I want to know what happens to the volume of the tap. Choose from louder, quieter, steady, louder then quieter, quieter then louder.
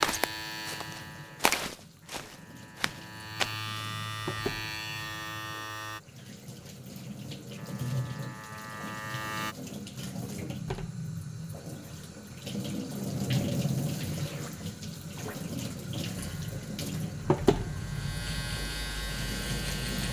louder.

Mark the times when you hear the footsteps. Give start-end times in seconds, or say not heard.
0.0-3.5.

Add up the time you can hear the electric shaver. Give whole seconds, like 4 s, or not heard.
12 s.